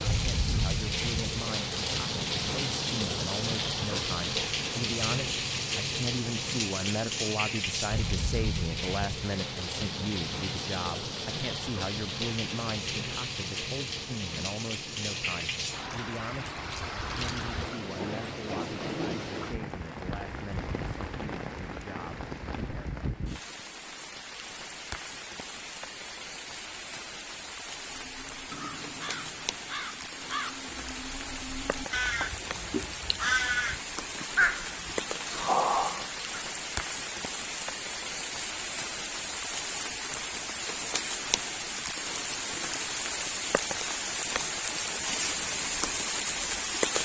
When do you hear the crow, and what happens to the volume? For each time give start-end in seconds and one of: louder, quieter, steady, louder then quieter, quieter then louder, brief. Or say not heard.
27.9-36.4 louder.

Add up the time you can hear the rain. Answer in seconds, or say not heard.
47 s.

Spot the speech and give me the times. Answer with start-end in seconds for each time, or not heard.
0.1-22.9.